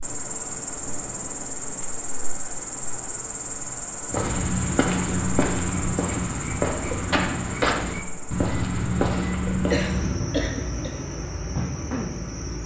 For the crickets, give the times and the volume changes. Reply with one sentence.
You can hear the crickets from 0.0 to 12.6 s, getting quieter then louder.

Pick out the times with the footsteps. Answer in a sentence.
The footsteps can be heard from 4.1 to 10.2 s.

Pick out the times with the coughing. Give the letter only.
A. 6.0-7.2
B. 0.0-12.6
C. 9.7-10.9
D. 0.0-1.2
C.